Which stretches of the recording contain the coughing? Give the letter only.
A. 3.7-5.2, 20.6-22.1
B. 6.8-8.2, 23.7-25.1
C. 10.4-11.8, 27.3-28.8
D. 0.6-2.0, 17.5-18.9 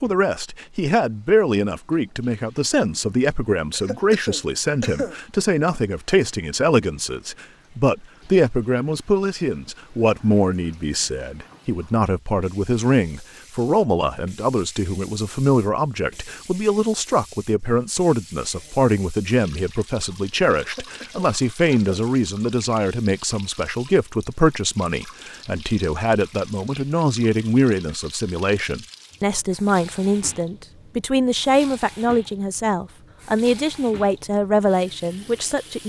A.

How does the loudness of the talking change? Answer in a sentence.
The loudness of the talking stays about the same.